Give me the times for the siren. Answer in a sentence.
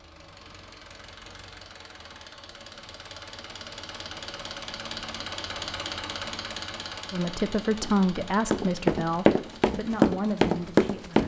The siren can't be heard in this clip.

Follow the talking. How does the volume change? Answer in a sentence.
The loudness of the talking goes down.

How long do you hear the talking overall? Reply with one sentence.
The talking can be heard for 4 seconds in total.